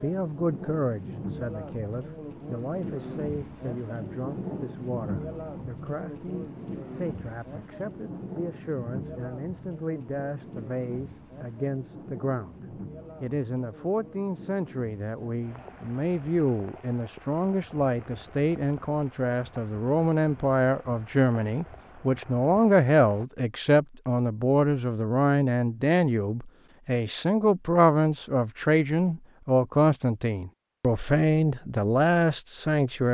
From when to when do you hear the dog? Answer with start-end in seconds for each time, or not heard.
not heard.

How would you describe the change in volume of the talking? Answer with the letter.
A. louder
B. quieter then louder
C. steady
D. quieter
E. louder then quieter
A.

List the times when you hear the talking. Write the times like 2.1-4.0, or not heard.
0.0-12.6, 13.2-33.1.